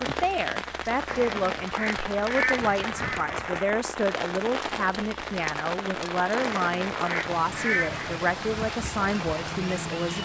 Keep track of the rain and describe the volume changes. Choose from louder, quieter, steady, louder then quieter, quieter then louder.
steady.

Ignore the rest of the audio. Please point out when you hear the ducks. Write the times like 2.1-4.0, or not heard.
1.1-3.6, 6.3-8.2.